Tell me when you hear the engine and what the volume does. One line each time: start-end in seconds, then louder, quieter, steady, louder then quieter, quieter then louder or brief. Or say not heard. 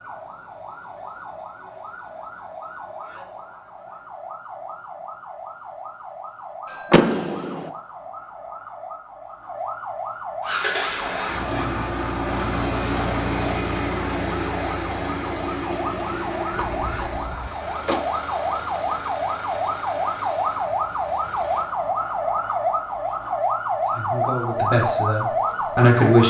10.4-21.7 quieter.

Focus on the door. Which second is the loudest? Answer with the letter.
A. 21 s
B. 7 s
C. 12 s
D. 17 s
B.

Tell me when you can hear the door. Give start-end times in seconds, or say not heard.
6.9-7.7, 16.5-18.0.